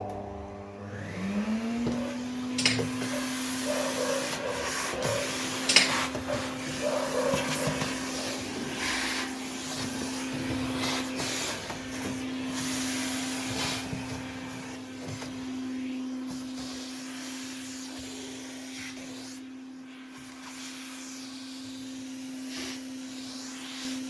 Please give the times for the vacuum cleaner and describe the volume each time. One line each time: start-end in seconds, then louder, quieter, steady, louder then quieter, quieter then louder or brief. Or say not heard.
0.0-24.0 quieter.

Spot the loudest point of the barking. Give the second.
6 s.